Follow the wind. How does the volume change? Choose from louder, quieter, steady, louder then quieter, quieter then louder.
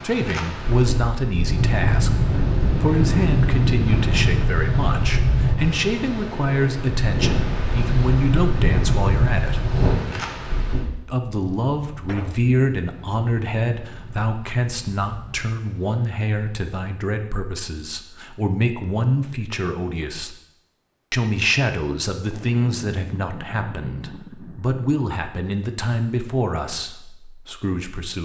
quieter.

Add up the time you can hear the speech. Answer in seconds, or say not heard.
26 s.